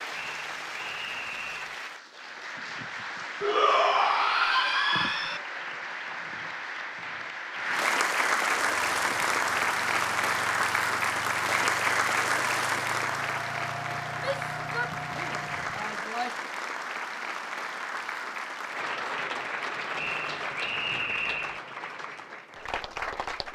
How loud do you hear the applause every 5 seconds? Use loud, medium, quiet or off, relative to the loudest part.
medium, loud, loud, medium, medium.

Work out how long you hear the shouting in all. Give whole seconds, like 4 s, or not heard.
4 s.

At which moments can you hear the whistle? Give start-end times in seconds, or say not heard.
0.1-1.8, 19.9-21.6.